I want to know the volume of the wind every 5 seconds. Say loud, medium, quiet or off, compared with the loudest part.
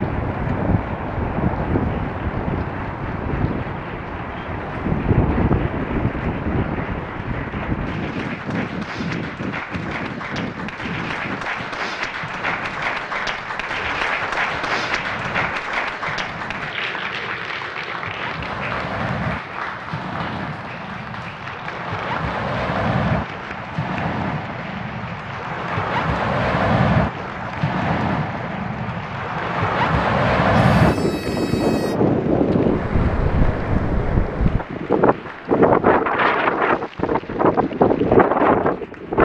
medium, medium, quiet, quiet, medium, medium, loud, loud.